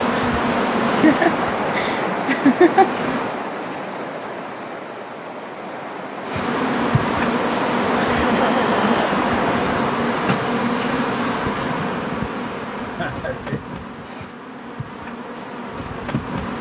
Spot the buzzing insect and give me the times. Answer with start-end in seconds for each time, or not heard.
0.0-3.4, 6.2-16.5.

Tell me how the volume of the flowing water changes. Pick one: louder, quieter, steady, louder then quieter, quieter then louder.
quieter then louder.